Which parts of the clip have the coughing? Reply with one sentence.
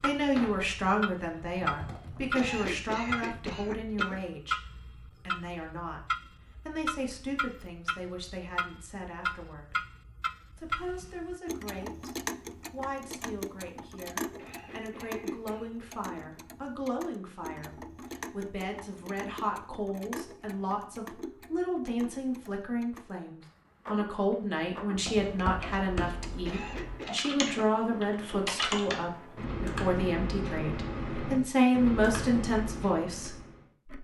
The coughing can be heard from 2.4 to 4.2 s, from 14.3 to 15.7 s and from 26.4 to 27.2 s.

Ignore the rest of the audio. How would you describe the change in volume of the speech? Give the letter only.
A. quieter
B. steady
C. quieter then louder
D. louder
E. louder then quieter
C.